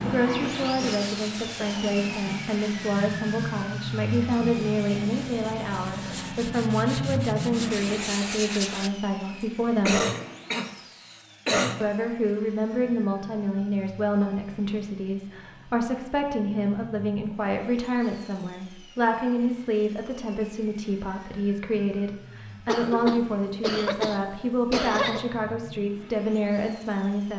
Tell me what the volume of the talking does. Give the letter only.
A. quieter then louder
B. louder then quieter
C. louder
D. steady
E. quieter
D.